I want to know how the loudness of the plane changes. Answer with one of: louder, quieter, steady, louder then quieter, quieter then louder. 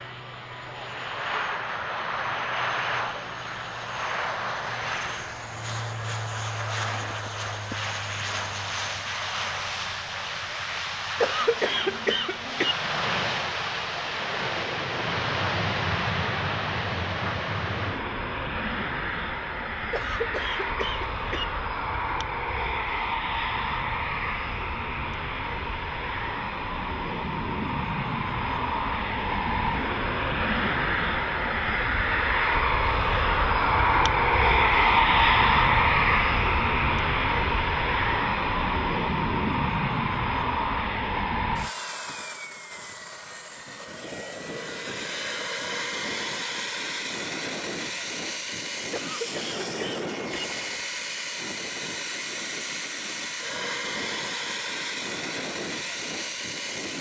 louder then quieter.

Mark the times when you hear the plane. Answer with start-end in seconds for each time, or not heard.
0.0-56.9.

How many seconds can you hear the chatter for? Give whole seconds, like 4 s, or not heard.
not heard.